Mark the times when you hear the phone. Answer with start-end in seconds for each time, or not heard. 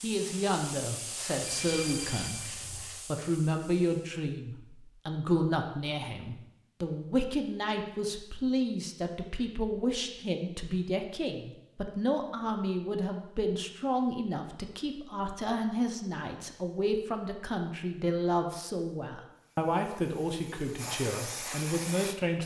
1.4-2.9.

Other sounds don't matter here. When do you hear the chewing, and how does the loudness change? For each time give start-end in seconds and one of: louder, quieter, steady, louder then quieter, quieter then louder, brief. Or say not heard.
not heard.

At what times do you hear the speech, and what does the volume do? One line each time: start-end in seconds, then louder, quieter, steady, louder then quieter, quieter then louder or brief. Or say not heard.
0.0-22.4 steady.